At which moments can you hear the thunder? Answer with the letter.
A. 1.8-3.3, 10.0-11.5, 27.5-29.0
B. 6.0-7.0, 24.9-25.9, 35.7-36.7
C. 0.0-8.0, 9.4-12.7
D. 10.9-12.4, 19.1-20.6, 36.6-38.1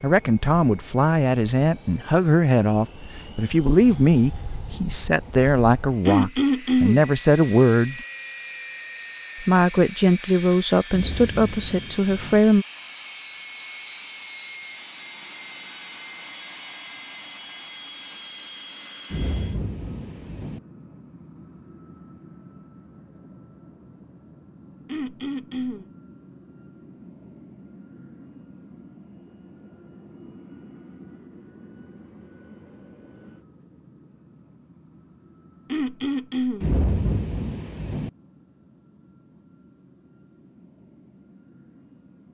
D.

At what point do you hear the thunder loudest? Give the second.
37 s.